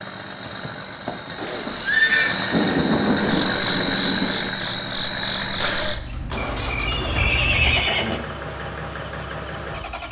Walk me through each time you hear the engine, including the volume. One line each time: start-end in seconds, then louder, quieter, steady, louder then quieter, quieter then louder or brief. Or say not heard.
0.0-10.0 louder then quieter.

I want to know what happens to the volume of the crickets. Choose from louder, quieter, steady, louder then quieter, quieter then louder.
louder.